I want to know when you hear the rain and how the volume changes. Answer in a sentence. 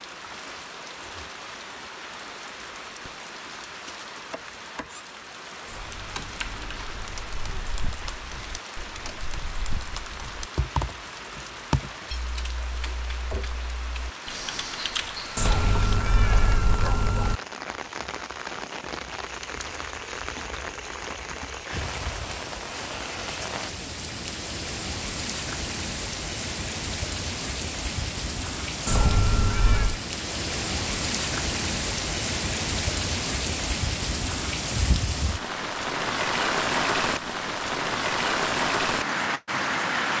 The rain can be heard from 0.0 to 40.1 s, getting louder.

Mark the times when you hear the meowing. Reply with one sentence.
The meowing can be heard from 5.7 to 7.5 s, from 15.3 to 17.4 s and from 28.9 to 30.0 s.